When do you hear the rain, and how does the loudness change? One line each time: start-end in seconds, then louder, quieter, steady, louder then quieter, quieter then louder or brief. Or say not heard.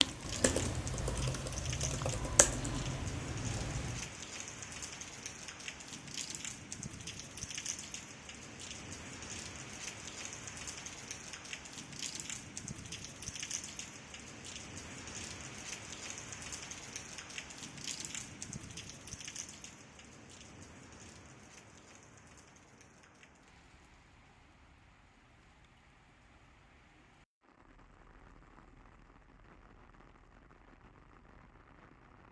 0.0-32.2 quieter.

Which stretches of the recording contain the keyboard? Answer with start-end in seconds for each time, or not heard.
0.0-4.1.